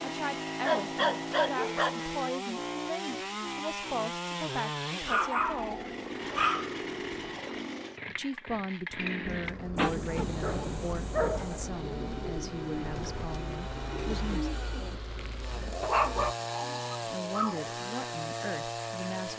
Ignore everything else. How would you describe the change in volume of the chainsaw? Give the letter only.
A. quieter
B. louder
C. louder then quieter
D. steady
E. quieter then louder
E.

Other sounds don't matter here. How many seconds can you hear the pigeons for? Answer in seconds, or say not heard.
7 s.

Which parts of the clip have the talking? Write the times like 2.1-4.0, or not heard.
0.0-5.8, 8.1-14.5, 17.1-19.3.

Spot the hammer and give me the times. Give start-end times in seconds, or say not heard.
not heard.